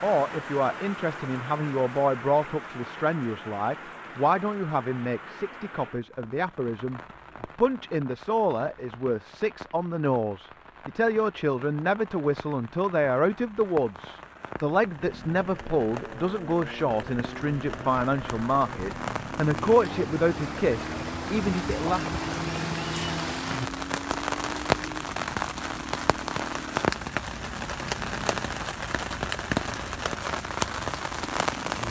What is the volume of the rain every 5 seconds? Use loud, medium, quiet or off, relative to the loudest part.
medium, quiet, quiet, medium, loud, loud, loud.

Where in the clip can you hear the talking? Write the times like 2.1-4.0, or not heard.
0.0-22.2.